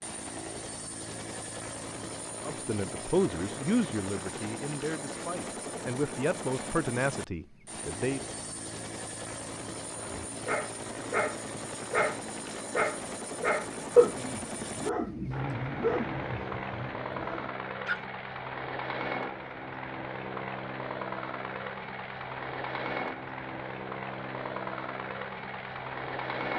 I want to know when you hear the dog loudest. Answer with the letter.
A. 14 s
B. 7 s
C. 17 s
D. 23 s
A.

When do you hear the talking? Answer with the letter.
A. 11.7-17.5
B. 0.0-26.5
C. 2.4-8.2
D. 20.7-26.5
C.